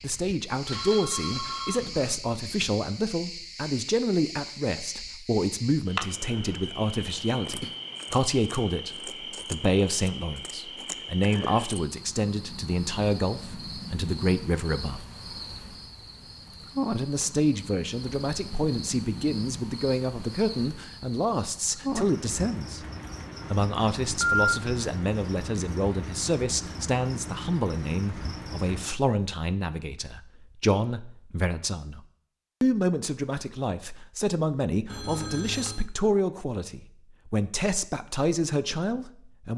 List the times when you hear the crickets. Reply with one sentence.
The crickets can be heard from 0.0 to 29.1 s.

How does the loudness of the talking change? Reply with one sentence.
The loudness of the talking stays about the same.